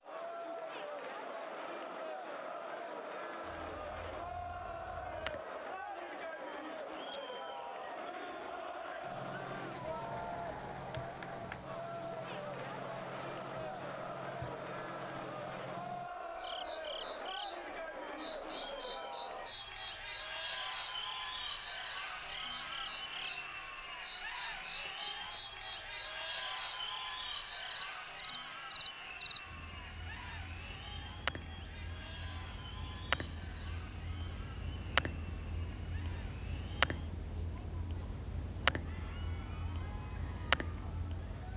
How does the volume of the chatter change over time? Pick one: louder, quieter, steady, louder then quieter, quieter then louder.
quieter.